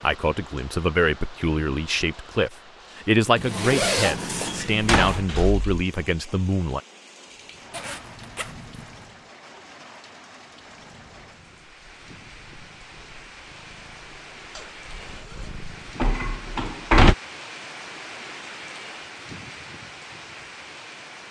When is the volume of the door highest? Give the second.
17 s.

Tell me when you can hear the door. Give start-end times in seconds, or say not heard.
4.2-5.7, 16.0-17.1.